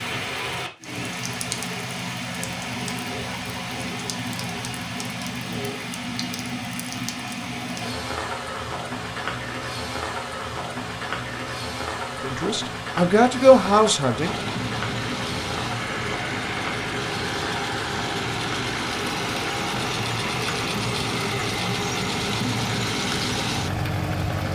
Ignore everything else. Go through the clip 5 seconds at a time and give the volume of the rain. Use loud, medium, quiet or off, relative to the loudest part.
loud, loud, loud, loud, medium.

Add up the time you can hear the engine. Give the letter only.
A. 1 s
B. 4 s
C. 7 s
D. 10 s
D.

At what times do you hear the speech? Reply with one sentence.
You can hear the speech from 12.2 to 14.3 s.